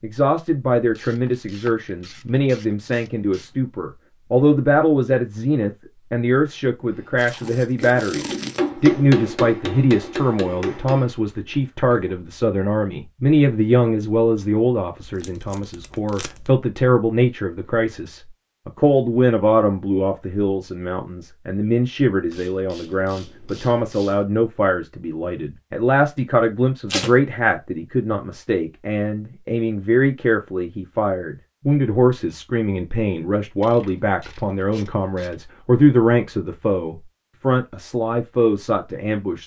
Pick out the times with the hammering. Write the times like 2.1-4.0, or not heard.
7.0-11.9.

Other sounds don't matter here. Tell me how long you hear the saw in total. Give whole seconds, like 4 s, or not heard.
not heard.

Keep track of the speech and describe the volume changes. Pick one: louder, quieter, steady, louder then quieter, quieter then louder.
steady.